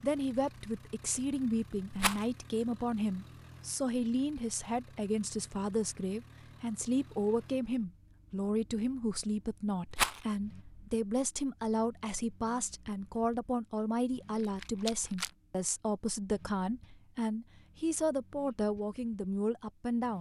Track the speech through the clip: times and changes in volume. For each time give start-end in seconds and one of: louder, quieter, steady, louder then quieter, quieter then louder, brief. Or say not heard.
0.0-20.1 steady.